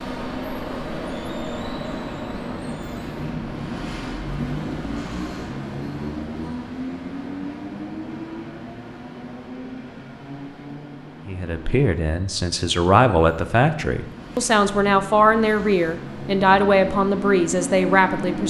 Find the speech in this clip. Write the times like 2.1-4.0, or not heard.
11.2-18.4.